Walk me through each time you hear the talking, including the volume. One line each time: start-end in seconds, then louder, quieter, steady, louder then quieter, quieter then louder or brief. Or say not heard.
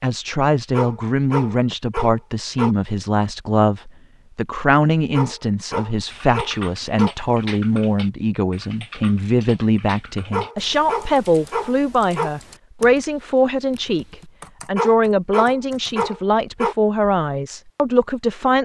0.0-18.5 steady.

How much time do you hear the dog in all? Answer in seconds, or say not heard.
8 s.